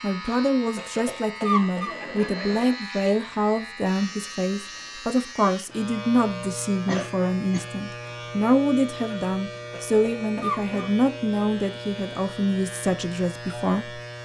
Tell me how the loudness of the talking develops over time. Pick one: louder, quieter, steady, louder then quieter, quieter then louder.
steady.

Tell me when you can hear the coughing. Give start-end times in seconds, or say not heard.
0.8-2.8, 6.8-7.7, 9.7-10.8.